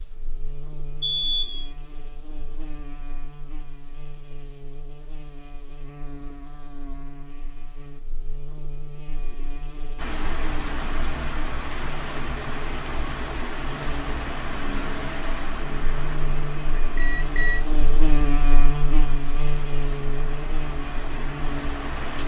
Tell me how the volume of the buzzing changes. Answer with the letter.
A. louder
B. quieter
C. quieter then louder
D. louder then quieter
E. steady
A.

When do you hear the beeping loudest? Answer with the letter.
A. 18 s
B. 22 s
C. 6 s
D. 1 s
D.